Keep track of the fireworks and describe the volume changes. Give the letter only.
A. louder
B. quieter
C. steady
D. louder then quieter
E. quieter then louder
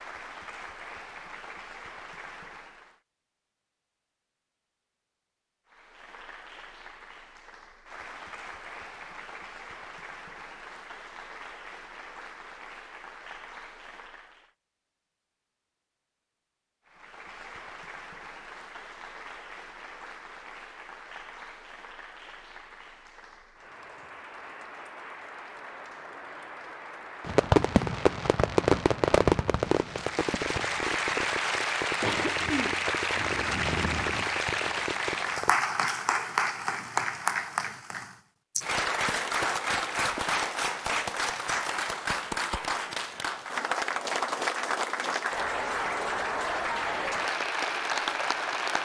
B.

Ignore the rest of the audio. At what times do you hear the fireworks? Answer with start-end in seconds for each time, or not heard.
27.2-35.5.